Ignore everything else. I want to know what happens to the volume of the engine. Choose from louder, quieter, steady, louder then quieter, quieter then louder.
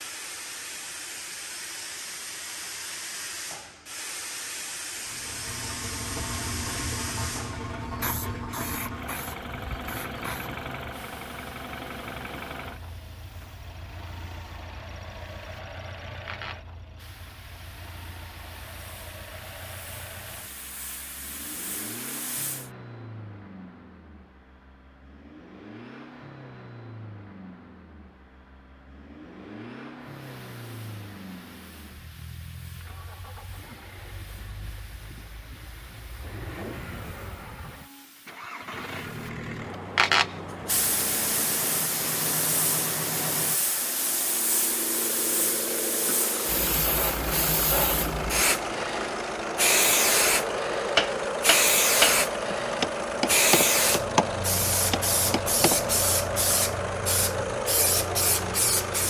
quieter then louder.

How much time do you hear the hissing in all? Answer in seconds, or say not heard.
52 s.